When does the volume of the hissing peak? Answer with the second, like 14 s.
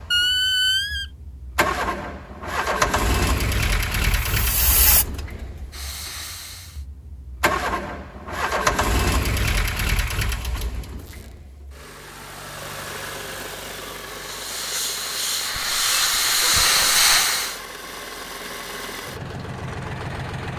17 s.